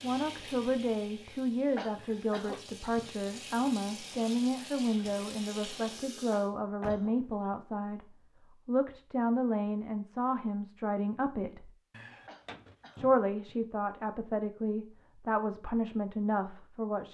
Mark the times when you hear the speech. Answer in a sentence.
The speech can be heard from 0.0 to 11.7 s and from 12.9 to 17.0 s.